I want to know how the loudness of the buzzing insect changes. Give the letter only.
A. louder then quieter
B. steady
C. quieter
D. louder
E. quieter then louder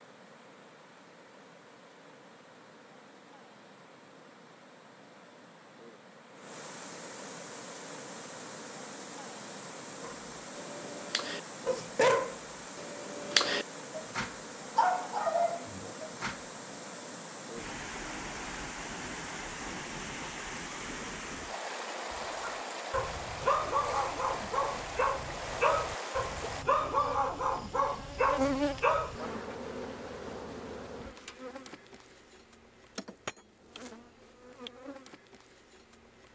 C.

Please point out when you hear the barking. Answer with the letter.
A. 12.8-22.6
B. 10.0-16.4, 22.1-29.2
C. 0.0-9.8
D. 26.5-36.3
B.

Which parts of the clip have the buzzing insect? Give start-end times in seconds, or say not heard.
26.5-36.3.